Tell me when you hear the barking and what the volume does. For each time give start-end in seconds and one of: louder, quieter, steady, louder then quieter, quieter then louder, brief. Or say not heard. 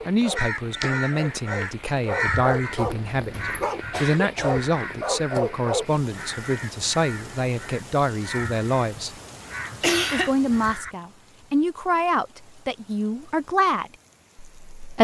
0.0-5.8 louder.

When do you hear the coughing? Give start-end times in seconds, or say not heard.
3.1-4.6, 9.7-10.3.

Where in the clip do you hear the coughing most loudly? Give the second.
10 s.